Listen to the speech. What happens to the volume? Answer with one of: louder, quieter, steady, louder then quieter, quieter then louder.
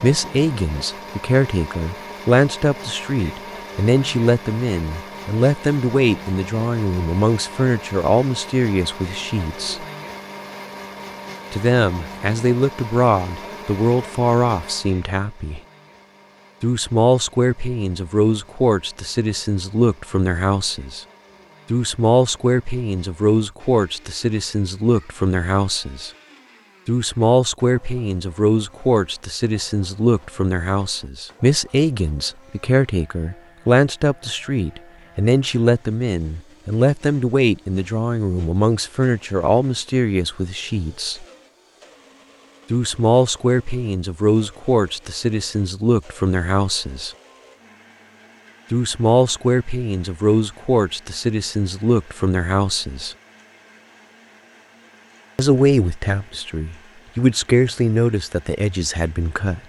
steady.